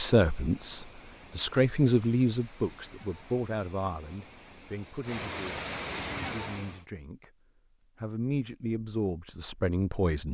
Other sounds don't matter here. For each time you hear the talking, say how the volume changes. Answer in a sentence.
The talking can be heard from 0.0 to 7.3 s, getting quieter; and briefly from 8.0 to 10.2 s.